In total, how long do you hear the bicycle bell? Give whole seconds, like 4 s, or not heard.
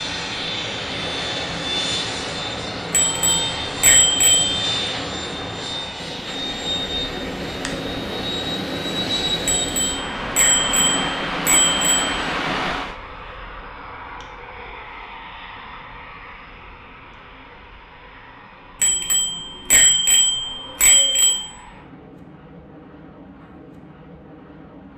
7 s.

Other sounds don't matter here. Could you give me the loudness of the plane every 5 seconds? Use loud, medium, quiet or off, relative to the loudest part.
loud, loud, medium, quiet, quiet.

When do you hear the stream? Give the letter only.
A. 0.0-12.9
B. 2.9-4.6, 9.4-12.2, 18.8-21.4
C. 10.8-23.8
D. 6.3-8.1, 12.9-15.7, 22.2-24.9
A.